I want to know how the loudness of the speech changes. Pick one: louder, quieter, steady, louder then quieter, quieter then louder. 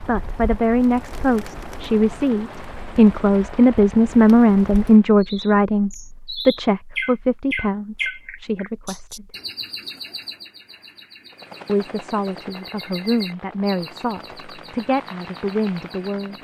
louder then quieter.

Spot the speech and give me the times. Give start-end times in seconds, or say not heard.
0.0-9.3, 11.7-16.3.